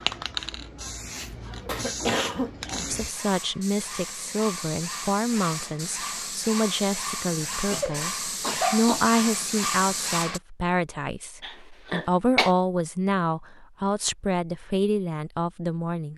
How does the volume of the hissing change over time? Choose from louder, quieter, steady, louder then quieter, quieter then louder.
louder.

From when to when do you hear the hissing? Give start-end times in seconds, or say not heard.
0.0-10.4.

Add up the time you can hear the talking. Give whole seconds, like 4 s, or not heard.
13 s.